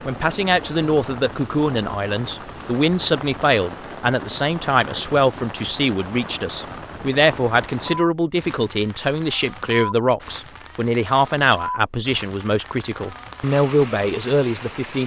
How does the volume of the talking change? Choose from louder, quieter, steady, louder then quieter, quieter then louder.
steady.